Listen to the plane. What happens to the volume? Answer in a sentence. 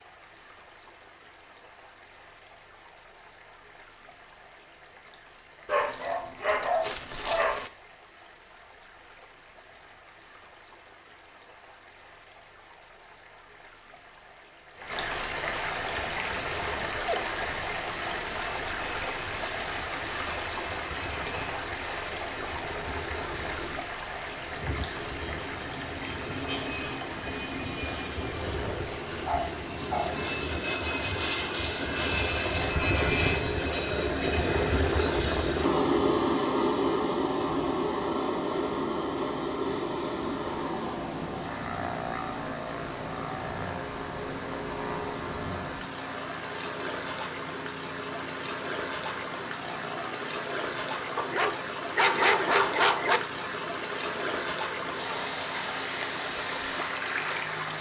The loudness of the plane goes up, then down.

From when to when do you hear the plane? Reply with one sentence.
The plane can be heard from 15.8 to 57.7 s.